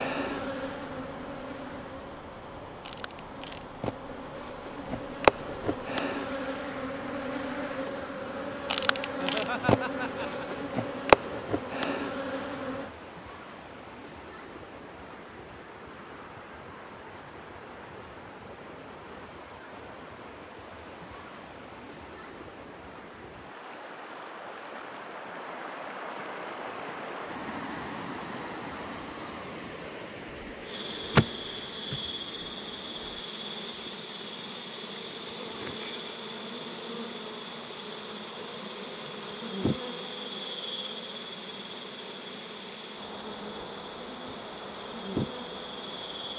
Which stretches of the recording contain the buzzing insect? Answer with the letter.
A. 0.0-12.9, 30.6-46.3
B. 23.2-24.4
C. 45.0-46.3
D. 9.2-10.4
A.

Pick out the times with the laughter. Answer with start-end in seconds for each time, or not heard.
9.2-10.4.